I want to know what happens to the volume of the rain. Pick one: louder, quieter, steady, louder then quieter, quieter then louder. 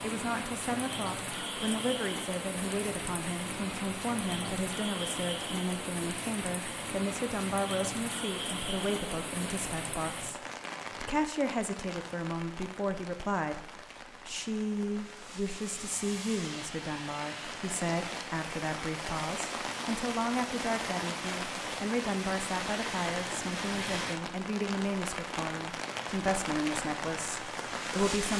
quieter then louder.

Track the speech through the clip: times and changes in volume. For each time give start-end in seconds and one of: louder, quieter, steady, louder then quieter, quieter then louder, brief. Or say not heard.
0.0-10.4 steady
11.0-28.3 steady.